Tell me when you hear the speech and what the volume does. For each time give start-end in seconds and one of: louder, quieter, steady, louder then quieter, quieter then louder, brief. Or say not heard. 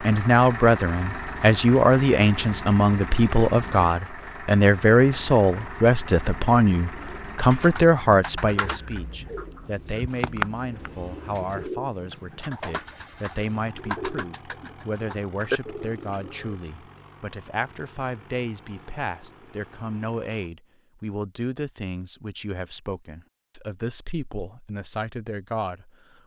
0.0-26.2 quieter.